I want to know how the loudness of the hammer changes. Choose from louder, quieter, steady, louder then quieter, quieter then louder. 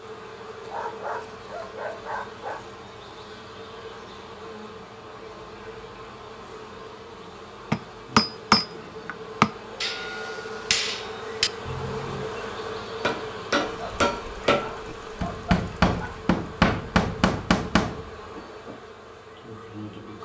quieter then louder.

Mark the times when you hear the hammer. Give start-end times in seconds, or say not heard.
7.7-18.8.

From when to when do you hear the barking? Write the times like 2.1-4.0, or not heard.
0.6-2.6, 13.7-16.2.